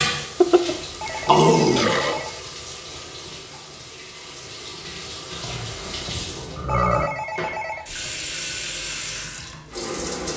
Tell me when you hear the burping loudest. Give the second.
1 s.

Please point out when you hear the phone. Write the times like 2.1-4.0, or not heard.
1.0-2.4, 6.7-7.8.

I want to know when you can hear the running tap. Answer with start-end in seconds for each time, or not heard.
0.0-10.3.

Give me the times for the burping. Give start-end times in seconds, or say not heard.
0.4-2.2, 5.4-7.1.